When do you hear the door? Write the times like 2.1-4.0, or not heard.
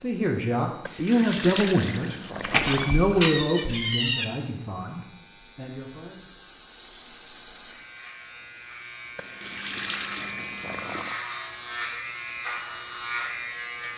2.4-4.2.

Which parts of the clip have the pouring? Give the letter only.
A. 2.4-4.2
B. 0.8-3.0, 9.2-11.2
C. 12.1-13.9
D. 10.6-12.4
B.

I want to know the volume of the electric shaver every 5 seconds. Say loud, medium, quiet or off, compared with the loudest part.
quiet, medium, loud.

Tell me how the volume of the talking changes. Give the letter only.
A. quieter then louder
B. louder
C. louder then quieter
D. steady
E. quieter
E.